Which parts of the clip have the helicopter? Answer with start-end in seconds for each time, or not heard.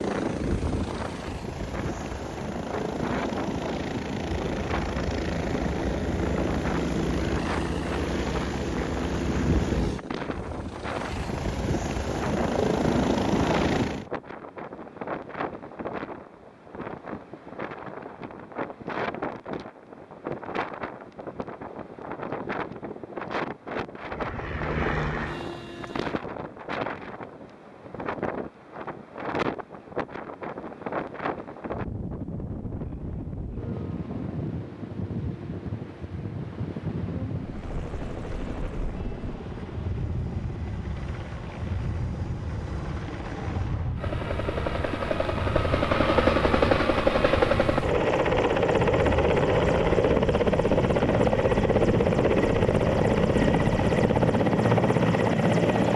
0.0-14.1, 24.0-26.1, 37.4-55.9.